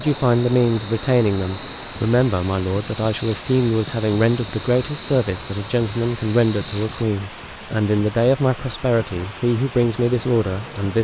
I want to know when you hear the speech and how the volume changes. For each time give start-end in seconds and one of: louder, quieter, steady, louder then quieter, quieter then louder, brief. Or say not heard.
0.0-10.9 steady.